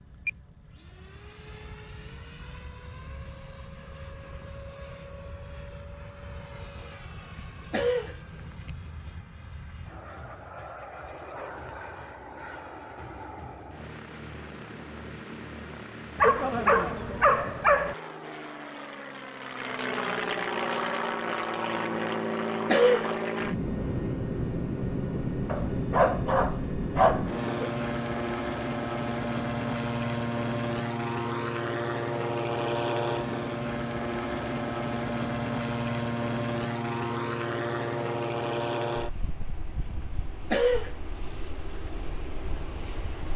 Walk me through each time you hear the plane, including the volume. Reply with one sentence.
You can hear the plane from 0.0 to 43.3 s, getting louder.